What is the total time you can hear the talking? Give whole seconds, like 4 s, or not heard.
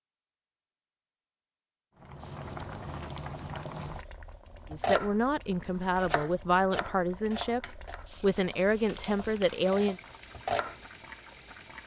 5 s.